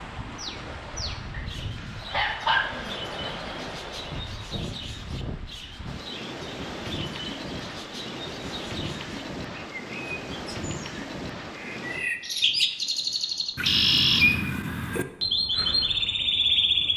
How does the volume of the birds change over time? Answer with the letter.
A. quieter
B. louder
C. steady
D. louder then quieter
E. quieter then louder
B.